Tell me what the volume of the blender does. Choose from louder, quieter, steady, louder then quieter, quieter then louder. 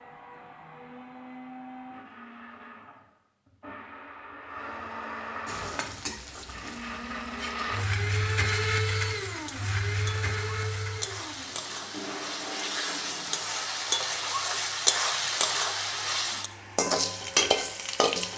louder then quieter.